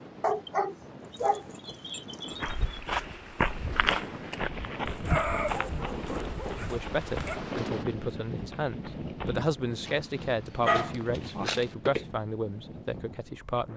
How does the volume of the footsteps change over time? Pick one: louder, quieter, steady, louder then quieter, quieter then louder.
quieter then louder.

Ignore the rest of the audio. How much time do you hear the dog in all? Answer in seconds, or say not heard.
6 s.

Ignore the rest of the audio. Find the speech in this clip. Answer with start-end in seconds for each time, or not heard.
6.5-13.7.